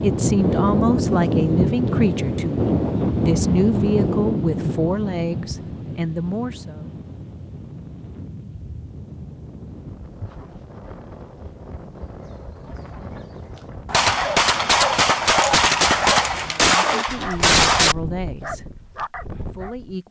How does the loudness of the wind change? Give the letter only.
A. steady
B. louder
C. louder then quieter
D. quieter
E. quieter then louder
D.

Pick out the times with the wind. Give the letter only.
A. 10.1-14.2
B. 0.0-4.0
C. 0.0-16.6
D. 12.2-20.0
C.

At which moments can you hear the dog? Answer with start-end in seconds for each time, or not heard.
12.2-20.0.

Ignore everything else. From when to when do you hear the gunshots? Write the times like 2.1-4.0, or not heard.
13.9-17.9.